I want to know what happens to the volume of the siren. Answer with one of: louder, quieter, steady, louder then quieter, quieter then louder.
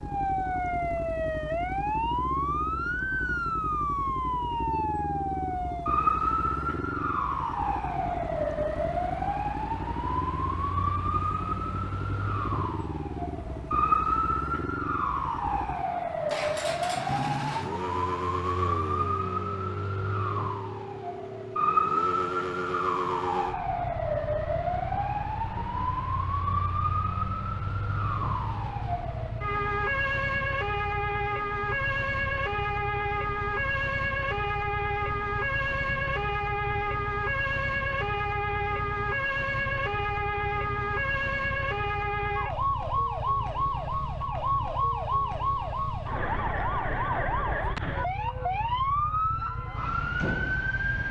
steady.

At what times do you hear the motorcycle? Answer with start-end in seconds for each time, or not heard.
0.0-51.0.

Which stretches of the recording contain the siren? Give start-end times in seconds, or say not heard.
0.0-51.0.